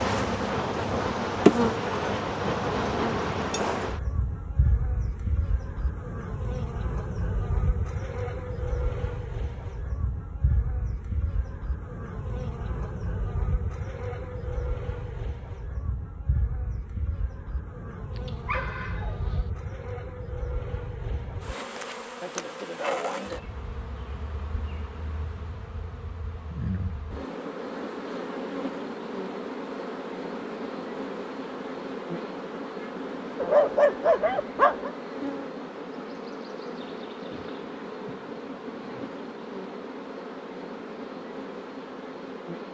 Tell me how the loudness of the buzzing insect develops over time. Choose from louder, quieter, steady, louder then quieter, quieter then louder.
quieter.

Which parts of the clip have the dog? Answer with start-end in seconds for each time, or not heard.
18.1-19.4, 33.4-34.9.